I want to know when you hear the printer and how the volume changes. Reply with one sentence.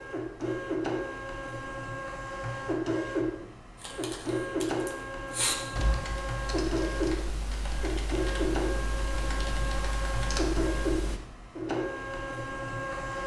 You can hear the printer from 0.0 to 13.2 s, at a steady volume.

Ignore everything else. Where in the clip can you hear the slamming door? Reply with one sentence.
You can hear the slamming door from 5.8 to 6.2 s.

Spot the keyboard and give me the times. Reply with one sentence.
The keyboard can be heard from 3.8 to 11.2 s.